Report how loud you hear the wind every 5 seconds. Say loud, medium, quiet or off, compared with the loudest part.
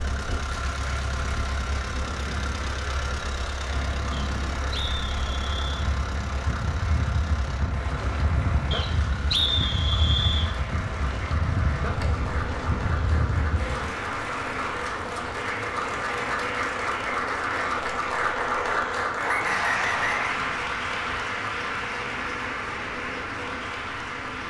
medium, loud, loud, off, off.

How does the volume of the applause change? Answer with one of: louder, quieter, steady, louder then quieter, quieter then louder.
louder.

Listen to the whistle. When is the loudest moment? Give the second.
9 s.